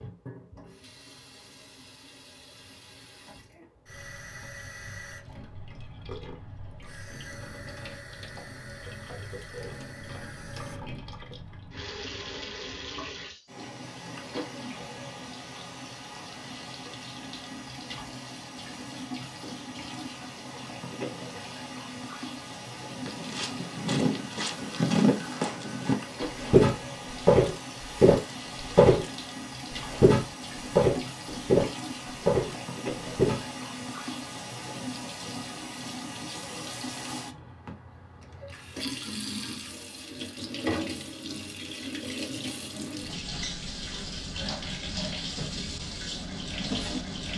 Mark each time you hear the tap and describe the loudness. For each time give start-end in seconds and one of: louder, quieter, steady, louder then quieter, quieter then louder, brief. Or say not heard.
0.0-47.3 louder.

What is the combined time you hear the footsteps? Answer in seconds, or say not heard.
10 s.